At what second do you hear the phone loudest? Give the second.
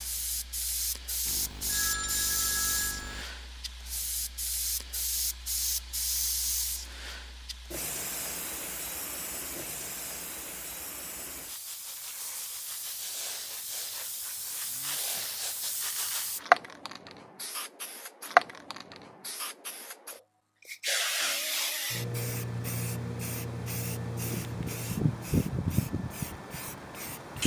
2 s.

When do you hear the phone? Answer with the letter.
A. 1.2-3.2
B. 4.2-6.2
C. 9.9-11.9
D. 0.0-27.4
A.